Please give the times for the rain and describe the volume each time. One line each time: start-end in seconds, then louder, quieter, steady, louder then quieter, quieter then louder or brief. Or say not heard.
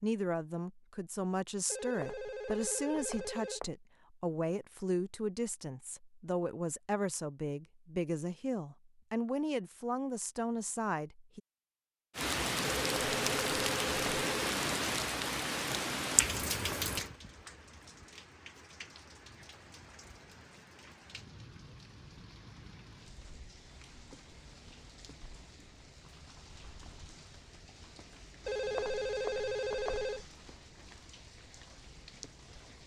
12.2-32.8 quieter.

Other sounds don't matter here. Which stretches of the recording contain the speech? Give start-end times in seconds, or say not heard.
0.0-11.4.